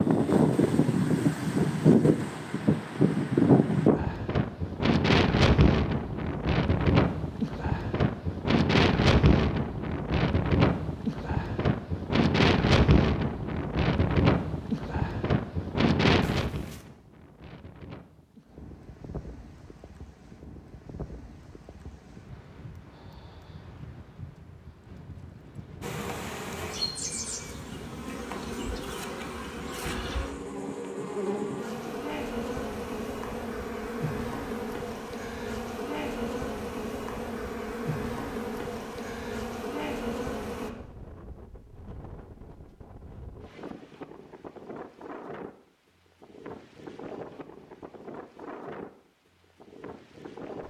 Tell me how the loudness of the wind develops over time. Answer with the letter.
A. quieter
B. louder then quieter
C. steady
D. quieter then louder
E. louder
A.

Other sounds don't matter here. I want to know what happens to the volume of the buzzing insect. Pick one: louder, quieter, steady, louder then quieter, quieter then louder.
steady.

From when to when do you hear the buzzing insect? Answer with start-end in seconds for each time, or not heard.
25.8-40.7.